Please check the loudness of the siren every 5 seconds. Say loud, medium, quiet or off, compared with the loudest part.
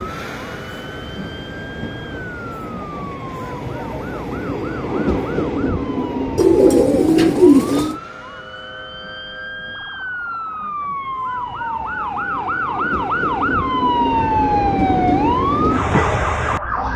quiet, quiet, loud, loud.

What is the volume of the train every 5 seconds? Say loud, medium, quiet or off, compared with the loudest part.
medium, medium, medium, loud.